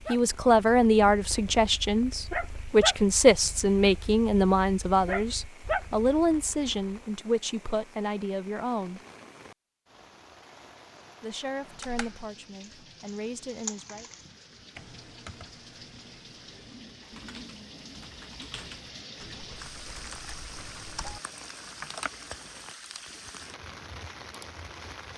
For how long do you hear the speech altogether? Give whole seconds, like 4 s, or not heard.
12 s.